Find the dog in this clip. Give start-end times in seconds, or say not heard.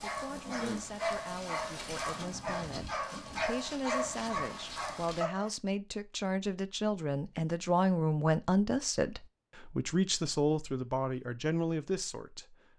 0.0-5.5.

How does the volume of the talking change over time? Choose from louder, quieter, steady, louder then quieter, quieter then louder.
louder.